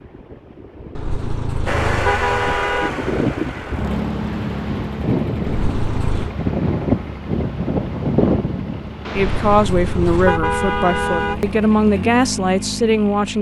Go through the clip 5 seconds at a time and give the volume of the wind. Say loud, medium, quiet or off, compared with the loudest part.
medium, loud, off.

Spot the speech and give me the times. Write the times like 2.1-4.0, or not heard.
9.1-13.3.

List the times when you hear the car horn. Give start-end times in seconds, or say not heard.
0.9-2.9, 5.5-6.3, 9.2-11.6.